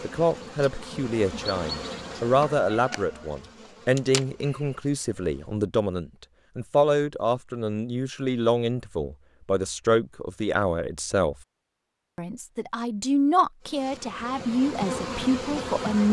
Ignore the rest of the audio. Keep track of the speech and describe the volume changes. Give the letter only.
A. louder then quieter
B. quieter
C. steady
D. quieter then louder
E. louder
C.